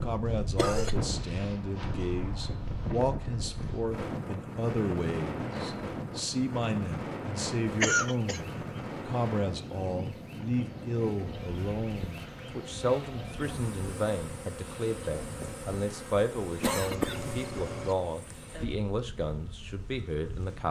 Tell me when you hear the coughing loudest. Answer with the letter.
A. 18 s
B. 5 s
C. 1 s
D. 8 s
D.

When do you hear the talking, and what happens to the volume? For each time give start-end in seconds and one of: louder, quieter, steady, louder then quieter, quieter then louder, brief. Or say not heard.
0.0-20.6 steady.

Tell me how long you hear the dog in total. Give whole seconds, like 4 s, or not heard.
not heard.